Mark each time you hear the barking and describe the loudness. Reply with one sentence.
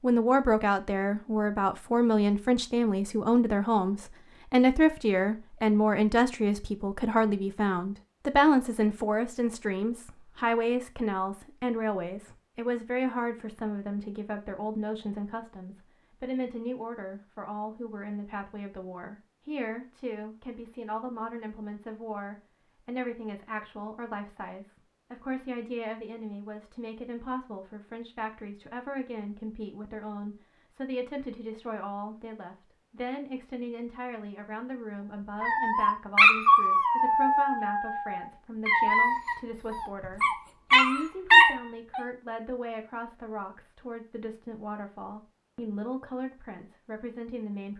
You can hear the barking from 35.4 to 42.0 s, getting quieter then louder.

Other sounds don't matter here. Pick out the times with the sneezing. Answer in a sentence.
You can't hear the sneezing here.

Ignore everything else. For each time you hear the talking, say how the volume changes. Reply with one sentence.
You can hear the talking from 0.0 to 47.7 s, getting quieter.